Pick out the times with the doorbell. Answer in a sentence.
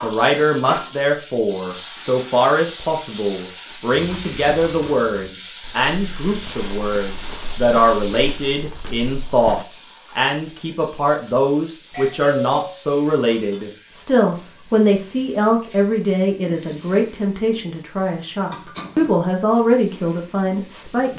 You can hear the doorbell from 11.9 to 12.8 s.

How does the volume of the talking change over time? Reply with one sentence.
The loudness of the talking stays about the same.